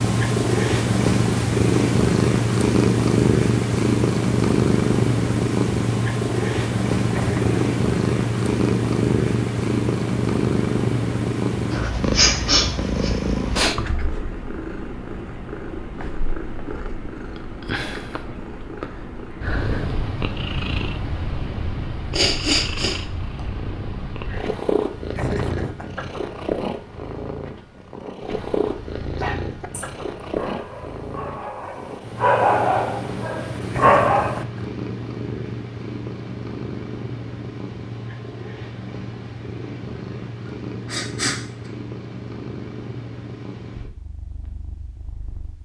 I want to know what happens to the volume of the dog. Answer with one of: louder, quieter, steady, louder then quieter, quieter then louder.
louder.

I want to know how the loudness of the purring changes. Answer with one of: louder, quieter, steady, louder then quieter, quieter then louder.
quieter.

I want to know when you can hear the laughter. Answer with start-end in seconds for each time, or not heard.
7.1-7.7, 25.1-26.1, 33.7-34.7.